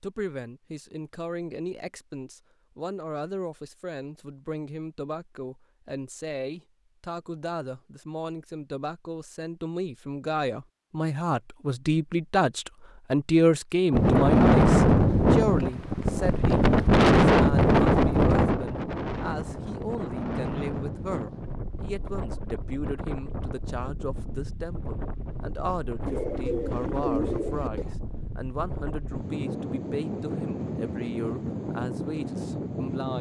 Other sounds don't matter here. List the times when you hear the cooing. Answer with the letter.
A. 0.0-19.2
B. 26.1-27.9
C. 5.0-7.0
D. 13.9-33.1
B.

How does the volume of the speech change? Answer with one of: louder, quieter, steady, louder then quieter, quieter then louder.
louder then quieter.